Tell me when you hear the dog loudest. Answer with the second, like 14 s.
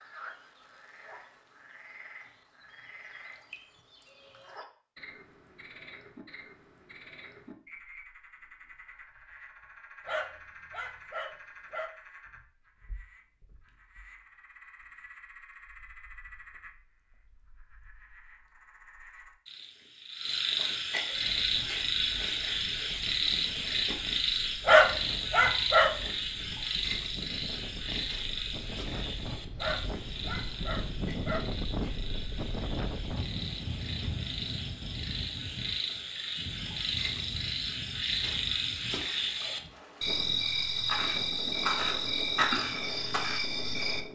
25 s.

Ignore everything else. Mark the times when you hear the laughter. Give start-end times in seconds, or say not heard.
not heard.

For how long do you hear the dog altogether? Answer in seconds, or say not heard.
5 s.